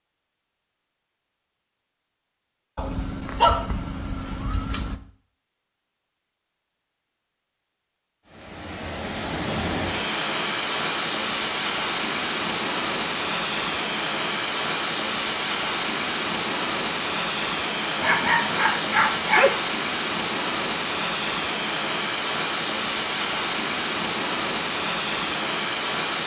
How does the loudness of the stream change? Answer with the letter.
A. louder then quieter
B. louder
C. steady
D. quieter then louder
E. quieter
C.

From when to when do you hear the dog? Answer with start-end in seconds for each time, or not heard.
2.8-5.0, 18.0-19.6.